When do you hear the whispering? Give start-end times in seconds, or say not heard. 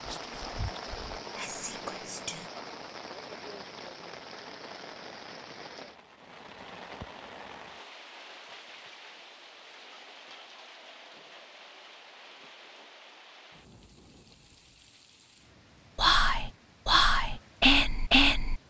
0.0-2.5, 15.9-18.6.